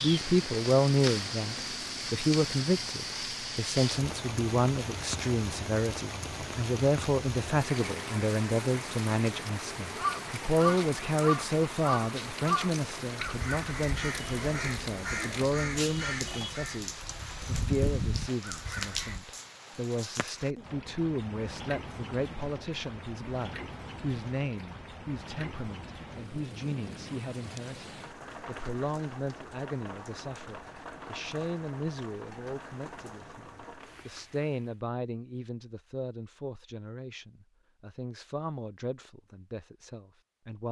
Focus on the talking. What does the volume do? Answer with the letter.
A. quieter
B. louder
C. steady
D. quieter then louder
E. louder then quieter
A.